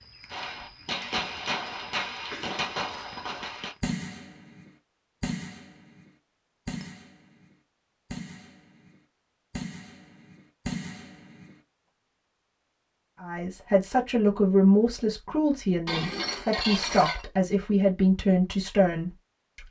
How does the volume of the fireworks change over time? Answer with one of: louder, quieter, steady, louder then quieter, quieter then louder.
quieter then louder.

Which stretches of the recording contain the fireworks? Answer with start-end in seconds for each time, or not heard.
0.3-11.6.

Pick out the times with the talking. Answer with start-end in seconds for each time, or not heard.
13.2-19.6.